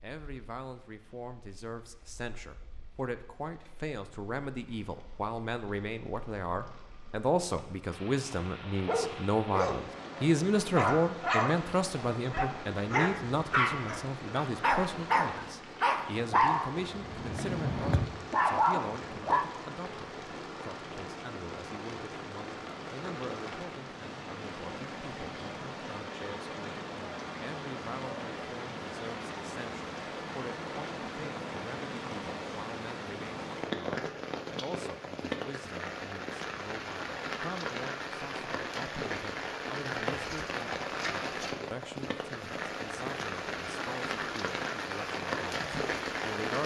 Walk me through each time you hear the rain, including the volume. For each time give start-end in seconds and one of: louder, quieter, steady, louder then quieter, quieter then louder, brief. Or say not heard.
0.2-46.6 louder.